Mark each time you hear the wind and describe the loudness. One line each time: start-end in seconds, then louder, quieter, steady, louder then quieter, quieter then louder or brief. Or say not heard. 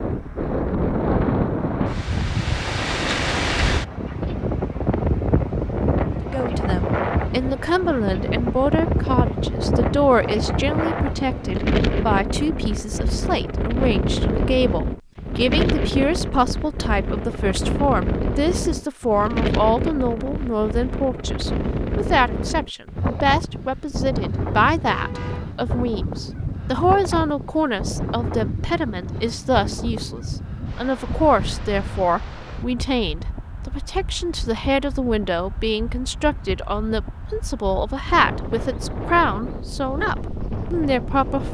0.0-41.5 quieter.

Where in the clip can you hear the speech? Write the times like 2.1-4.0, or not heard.
6.2-41.5.